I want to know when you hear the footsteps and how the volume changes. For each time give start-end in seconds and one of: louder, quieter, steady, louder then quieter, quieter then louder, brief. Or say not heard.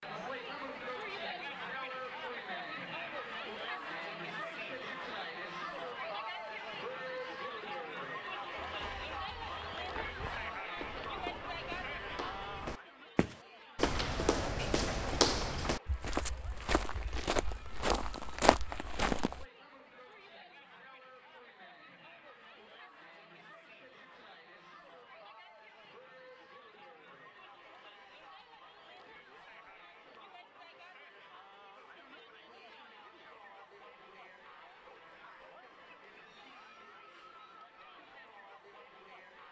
8.6-19.4 louder.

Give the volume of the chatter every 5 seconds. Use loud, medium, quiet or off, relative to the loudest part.
loud, loud, loud, quiet, quiet, quiet, quiet, quiet.